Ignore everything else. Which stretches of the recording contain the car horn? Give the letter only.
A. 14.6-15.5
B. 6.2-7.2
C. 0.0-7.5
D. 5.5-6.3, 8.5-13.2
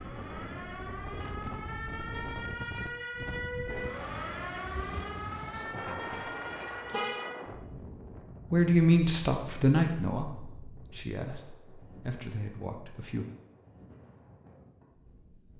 B.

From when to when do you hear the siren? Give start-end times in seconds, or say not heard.
0.0-7.5.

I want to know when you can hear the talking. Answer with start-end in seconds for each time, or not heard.
5.5-6.3, 8.5-13.2.